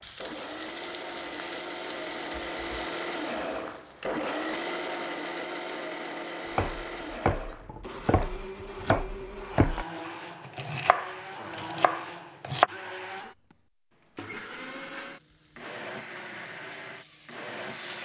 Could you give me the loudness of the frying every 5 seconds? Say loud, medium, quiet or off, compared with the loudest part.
loud, off, off, medium.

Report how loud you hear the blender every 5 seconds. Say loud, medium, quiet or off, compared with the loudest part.
loud, loud, medium, medium.